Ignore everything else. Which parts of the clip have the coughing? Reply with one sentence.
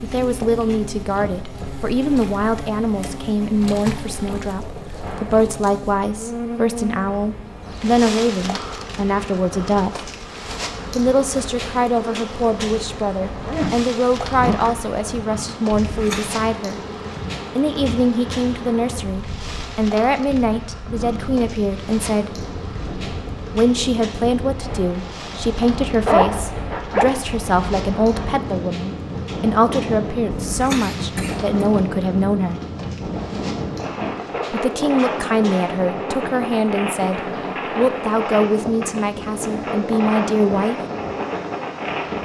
The coughing can be heard from 15.8 to 16.3 s and from 30.3 to 31.6 s.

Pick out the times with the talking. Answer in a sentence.
You can hear the talking from 0.0 to 10.1 s, from 10.9 to 16.8 s, from 17.6 to 22.3 s, from 23.6 to 32.6 s and from 34.5 to 40.8 s.